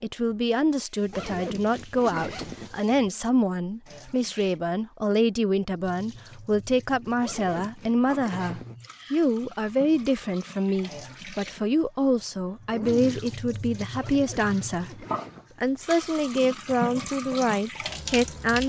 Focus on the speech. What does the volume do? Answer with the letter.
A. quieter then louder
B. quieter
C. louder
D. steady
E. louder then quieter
D.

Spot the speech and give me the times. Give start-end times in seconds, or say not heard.
0.0-18.6.